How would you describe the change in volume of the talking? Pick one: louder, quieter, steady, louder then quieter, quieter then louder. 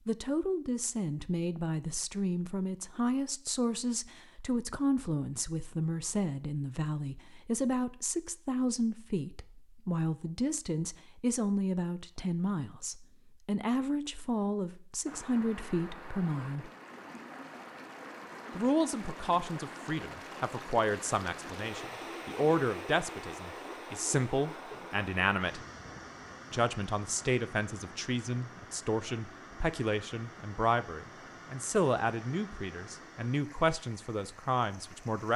steady.